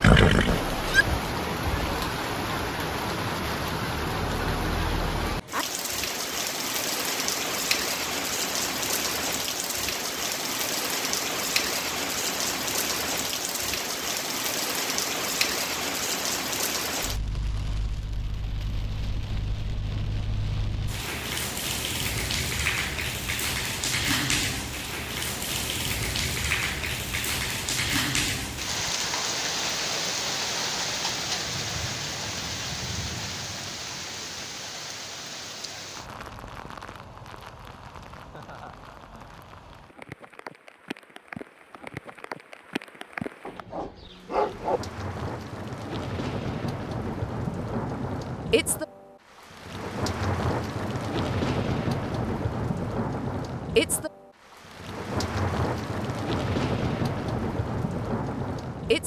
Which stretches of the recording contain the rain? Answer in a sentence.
The rain can be heard from 0.0 to 59.0 s.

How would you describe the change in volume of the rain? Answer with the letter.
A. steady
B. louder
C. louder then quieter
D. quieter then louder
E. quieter
D.